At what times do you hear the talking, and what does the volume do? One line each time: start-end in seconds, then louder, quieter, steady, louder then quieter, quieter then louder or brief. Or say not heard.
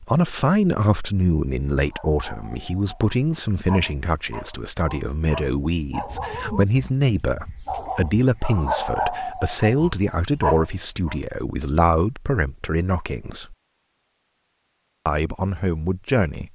0.0-13.6 steady
15.1-16.5 brief.